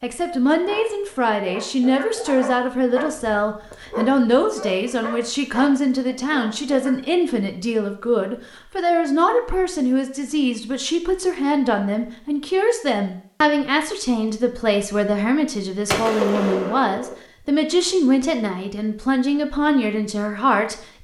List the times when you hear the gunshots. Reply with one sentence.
You can hear the gunshots from 15.9 to 17.1 s.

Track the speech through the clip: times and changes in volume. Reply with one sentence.
You can hear the speech from 0.0 to 20.9 s, at a steady volume.